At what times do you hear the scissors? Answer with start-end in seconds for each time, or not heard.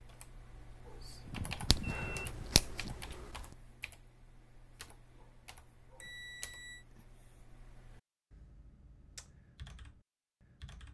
1.7-3.5.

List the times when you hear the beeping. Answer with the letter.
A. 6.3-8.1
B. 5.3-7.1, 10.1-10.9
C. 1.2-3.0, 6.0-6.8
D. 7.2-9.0
C.